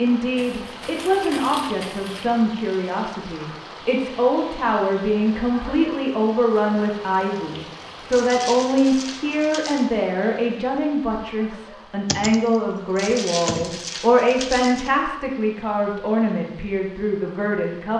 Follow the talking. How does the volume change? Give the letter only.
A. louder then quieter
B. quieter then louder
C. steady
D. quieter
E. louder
C.